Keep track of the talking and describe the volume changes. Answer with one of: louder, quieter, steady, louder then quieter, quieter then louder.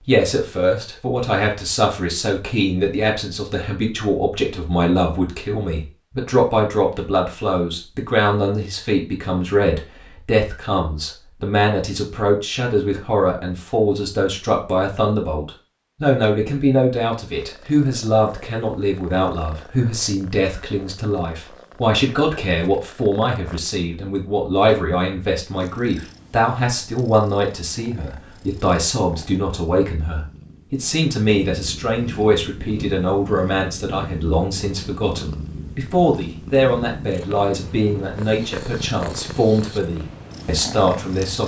steady.